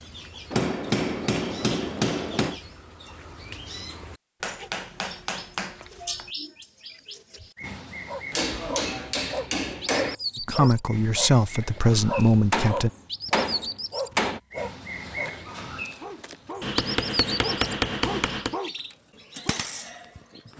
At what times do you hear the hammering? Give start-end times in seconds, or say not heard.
0.5-2.6, 4.4-6.3, 8.3-10.2, 12.3-14.4, 16.6-18.6.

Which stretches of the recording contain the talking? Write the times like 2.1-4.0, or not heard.
10.3-12.9.